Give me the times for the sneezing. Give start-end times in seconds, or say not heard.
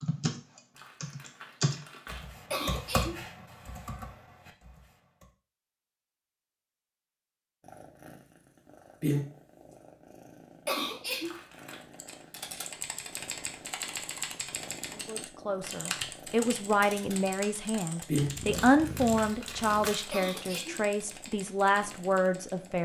2.5-3.2, 10.7-11.4, 20.1-20.9.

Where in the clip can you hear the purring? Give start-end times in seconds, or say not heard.
7.6-22.8.